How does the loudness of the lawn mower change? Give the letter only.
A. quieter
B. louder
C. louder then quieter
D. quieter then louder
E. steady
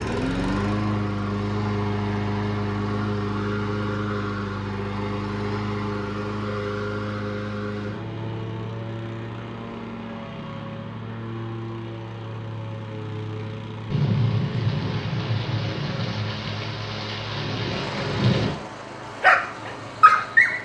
A.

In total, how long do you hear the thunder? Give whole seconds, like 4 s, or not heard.
5 s.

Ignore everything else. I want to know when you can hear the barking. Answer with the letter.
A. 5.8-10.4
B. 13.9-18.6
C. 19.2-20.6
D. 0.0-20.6
C.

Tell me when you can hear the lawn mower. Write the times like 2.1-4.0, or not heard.
0.0-20.6.